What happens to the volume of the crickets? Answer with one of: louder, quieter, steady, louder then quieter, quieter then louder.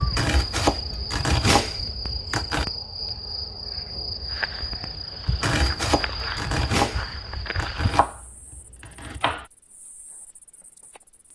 quieter.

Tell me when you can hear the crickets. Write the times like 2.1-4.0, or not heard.
0.0-11.3.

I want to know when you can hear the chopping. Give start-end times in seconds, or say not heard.
0.0-2.6, 5.2-9.4.